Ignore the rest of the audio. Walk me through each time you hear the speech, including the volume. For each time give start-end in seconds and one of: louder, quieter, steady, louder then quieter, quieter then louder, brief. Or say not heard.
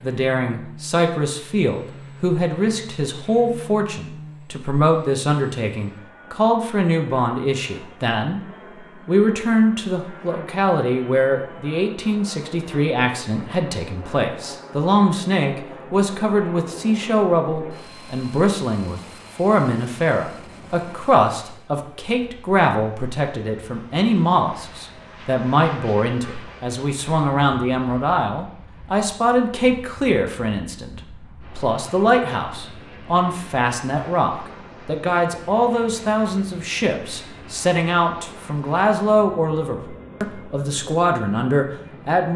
0.0-8.4 steady
9.1-42.3 steady.